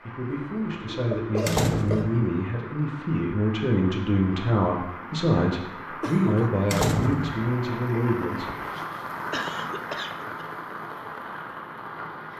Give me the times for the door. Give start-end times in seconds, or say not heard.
1.4-2.2, 6.7-7.5.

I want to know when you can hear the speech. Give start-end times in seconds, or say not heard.
0.1-8.4.